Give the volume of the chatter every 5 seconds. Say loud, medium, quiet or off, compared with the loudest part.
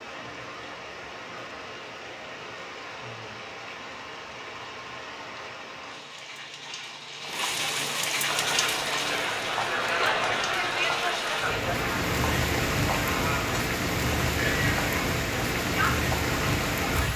off, loud, loud, loud.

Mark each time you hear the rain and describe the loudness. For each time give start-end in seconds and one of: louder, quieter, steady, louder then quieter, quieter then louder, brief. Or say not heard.
0.0-17.1 louder.